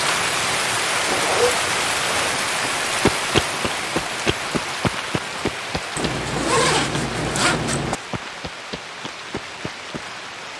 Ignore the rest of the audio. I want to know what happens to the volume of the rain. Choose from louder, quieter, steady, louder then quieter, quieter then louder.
quieter.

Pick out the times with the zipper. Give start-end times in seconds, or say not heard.
0.9-2.5, 6.0-8.0.